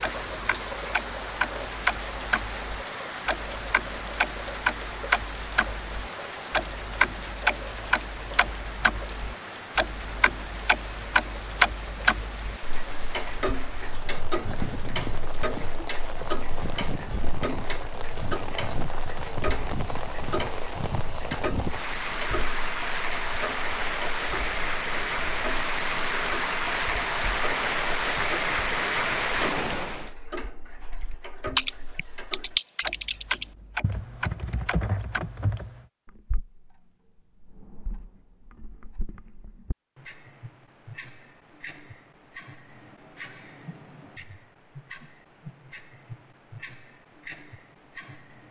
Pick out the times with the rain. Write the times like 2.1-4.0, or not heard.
0.0-30.1.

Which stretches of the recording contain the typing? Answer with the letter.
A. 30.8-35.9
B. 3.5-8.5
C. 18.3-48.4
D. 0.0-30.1
A.